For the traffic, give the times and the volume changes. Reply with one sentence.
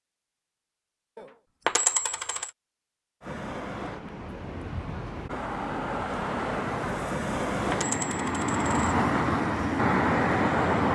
You can hear the traffic from 3.2 to 10.9 s, getting louder.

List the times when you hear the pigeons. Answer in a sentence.
The pigeons can't be heard in this clip.